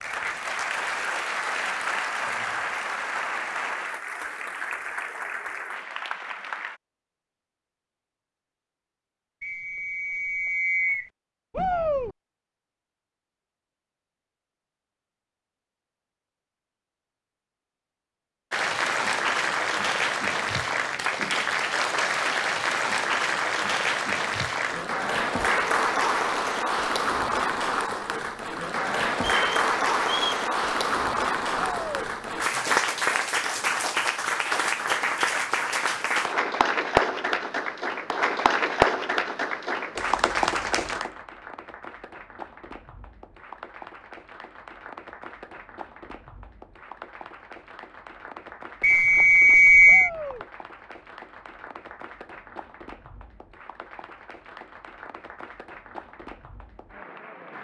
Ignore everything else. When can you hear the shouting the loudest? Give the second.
12 s.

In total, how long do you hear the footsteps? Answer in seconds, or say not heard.
not heard.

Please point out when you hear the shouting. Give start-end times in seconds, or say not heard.
11.5-12.2, 31.6-32.1, 49.9-50.5.